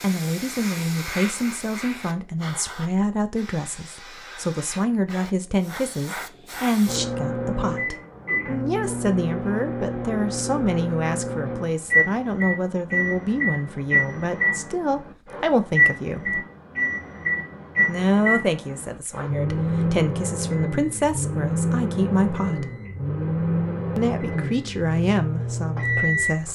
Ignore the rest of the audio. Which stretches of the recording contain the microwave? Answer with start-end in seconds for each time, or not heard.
6.8-26.4.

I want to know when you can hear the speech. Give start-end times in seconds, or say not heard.
0.0-16.4, 17.9-22.7, 23.9-26.4.